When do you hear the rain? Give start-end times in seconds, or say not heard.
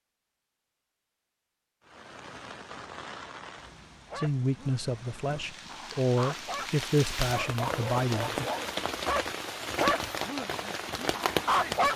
1.9-11.9.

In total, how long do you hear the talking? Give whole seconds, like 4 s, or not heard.
4 s.